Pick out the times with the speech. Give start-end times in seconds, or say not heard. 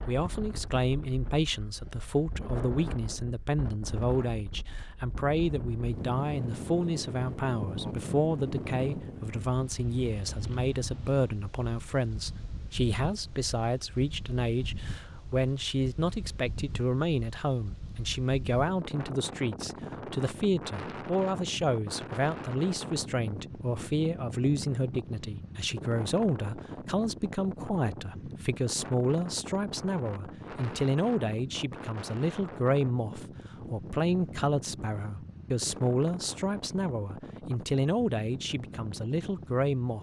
0.1-39.9.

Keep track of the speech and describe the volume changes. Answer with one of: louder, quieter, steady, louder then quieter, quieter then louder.
steady.